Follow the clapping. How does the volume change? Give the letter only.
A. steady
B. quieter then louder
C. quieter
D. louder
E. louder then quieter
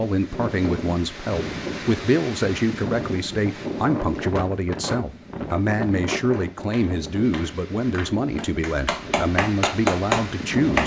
D.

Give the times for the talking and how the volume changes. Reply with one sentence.
You can hear the talking from 0.0 to 10.8 s, at a steady volume.